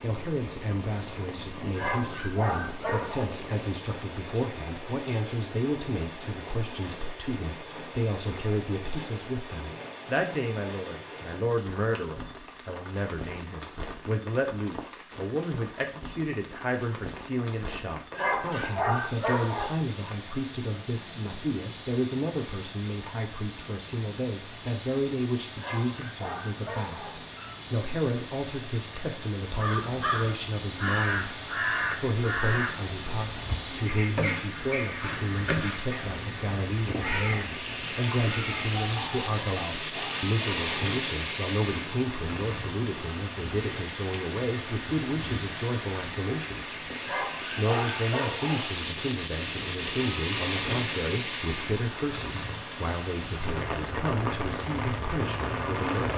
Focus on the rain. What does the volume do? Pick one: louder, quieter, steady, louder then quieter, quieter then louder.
louder.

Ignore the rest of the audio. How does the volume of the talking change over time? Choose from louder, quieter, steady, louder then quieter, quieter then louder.
steady.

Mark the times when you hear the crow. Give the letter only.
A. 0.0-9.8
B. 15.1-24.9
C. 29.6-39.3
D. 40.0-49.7
C.